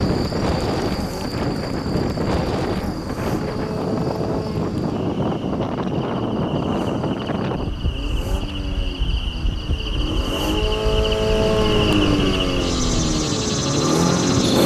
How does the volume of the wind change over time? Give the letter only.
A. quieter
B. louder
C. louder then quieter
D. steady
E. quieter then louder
E.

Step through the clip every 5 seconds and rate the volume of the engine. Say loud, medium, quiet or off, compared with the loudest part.
medium, quiet, loud.